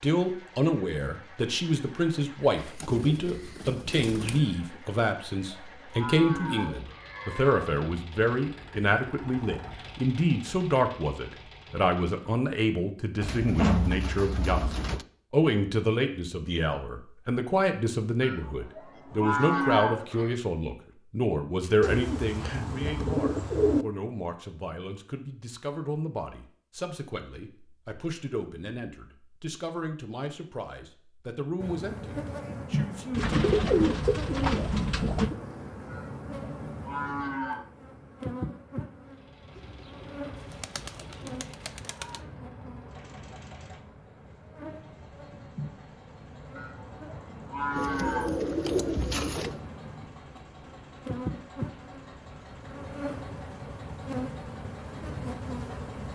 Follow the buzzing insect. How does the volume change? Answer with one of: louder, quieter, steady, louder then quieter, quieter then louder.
quieter then louder.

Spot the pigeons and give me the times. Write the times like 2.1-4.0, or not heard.
2.5-4.4, 13.2-15.1, 21.8-23.9, 33.1-35.4, 39.5-42.2, 47.8-49.6.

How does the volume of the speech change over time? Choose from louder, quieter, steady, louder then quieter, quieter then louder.
quieter.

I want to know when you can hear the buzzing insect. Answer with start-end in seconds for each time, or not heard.
31.6-56.1.